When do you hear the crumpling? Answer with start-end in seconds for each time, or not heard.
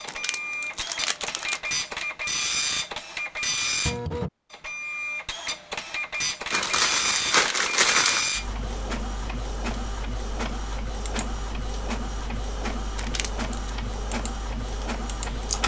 0.1-1.6, 6.5-8.3, 12.9-13.7.